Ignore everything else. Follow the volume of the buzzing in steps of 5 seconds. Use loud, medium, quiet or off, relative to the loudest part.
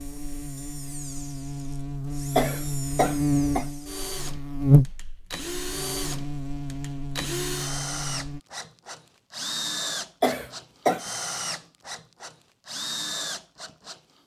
loud, medium, off.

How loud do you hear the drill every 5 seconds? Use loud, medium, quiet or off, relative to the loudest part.
medium, loud, loud.